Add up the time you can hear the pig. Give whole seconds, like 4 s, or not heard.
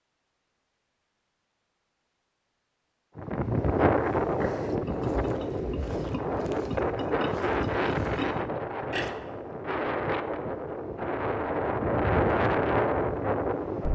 5 s.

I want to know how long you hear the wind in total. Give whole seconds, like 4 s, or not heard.
11 s.